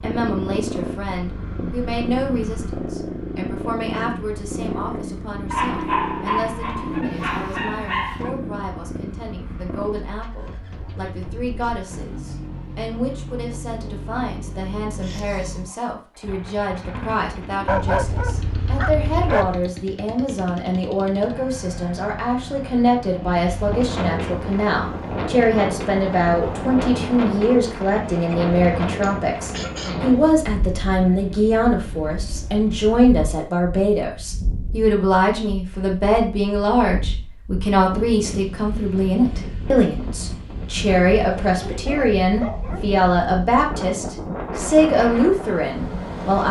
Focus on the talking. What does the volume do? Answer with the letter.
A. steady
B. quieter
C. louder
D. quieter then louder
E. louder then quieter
C.